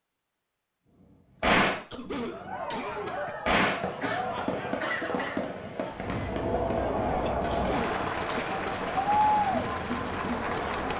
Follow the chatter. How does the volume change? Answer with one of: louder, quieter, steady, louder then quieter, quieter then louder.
louder.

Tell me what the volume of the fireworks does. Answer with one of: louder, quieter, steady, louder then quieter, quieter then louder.
quieter.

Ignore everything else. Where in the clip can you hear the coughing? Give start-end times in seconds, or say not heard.
1.7-3.4, 7.1-8.9.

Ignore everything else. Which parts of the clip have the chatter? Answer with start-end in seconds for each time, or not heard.
2.1-10.9.